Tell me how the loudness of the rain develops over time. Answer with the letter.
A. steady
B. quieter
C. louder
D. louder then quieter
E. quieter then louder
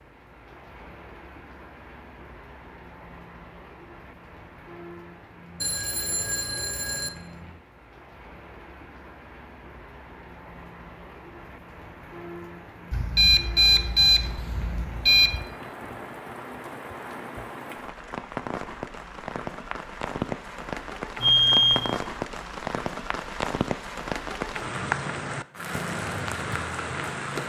C.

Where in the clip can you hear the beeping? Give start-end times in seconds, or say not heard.
5.6-7.1, 12.9-15.4, 21.2-21.9.